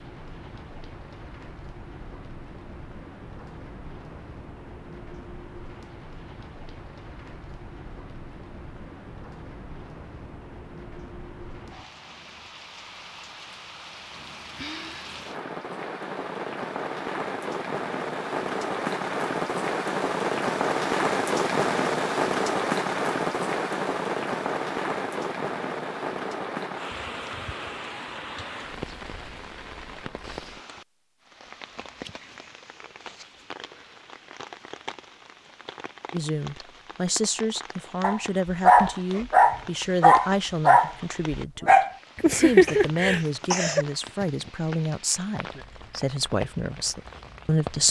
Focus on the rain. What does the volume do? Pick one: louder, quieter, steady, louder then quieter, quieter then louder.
louder then quieter.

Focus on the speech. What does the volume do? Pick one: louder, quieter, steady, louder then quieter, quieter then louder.
steady.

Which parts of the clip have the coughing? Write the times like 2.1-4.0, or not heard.
42.6-43.9.